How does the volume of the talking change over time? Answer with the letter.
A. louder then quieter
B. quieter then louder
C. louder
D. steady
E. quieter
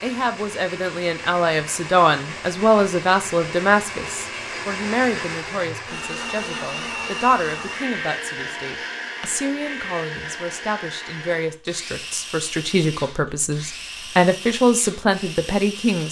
B.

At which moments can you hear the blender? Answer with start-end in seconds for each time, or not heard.
0.0-16.0.